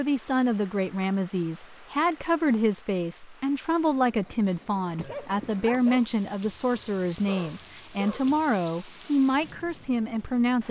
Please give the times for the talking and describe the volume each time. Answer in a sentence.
You can hear the talking from 0.0 to 10.6 s, at a steady volume.